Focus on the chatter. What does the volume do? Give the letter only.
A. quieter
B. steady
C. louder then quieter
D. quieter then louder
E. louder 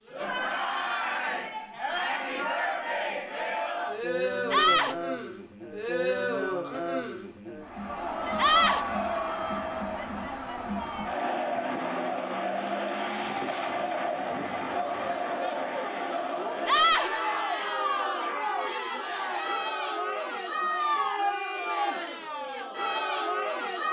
B.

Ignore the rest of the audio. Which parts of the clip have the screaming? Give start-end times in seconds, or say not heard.
4.5-5.0, 8.3-8.8, 16.6-17.1.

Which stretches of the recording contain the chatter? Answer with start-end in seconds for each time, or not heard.
0.1-23.8.